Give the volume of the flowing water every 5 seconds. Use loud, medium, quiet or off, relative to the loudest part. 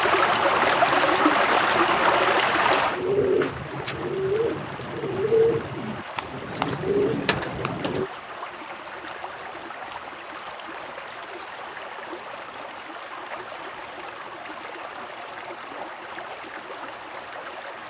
loud, quiet, quiet, quiet.